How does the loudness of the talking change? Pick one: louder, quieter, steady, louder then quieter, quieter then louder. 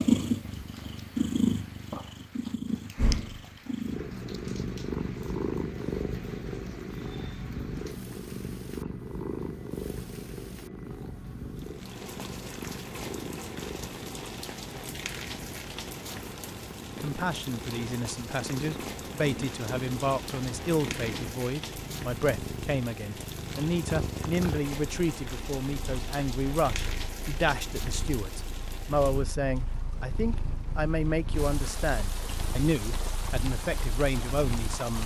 steady.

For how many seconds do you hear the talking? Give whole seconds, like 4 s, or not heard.
18 s.